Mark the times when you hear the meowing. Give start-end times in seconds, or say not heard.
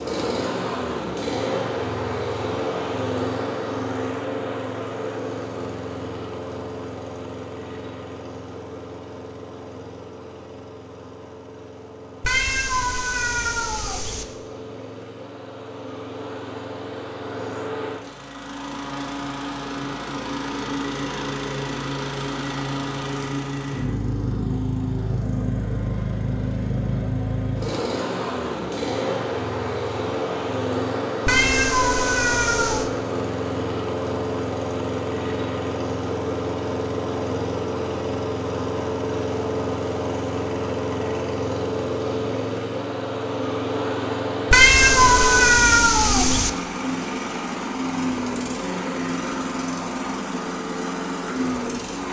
12.2-14.2, 31.2-32.9, 44.5-46.5.